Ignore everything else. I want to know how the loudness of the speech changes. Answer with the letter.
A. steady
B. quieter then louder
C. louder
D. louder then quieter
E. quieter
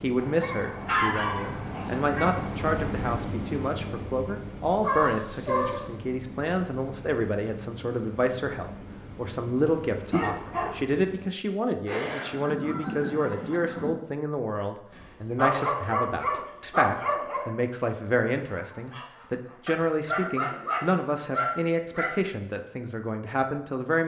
A.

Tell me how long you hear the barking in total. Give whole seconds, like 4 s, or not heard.
8 s.